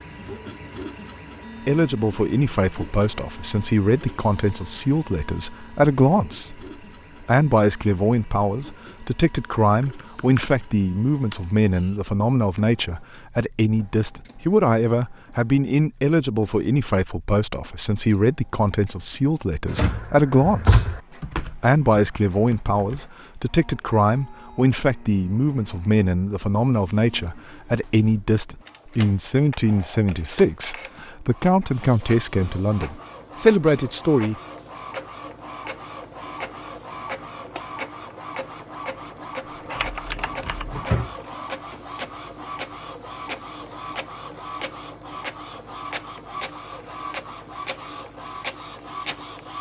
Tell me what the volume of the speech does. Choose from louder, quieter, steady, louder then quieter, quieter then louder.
steady.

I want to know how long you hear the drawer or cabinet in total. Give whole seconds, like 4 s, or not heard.
3 s.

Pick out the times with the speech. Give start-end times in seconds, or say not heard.
1.6-20.9, 21.6-34.4.